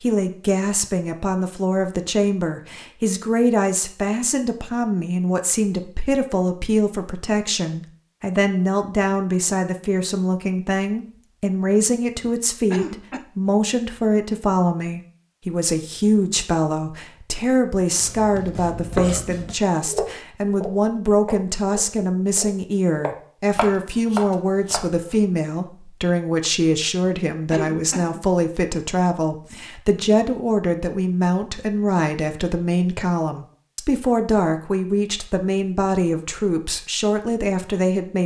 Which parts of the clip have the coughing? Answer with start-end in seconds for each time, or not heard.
12.2-13.2, 27.0-28.3.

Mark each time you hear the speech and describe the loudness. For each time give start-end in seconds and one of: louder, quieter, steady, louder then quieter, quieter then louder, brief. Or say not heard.
0.0-38.2 steady.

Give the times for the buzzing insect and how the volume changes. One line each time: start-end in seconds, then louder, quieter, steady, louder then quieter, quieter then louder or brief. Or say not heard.
not heard.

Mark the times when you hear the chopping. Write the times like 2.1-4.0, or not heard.
17.9-25.1.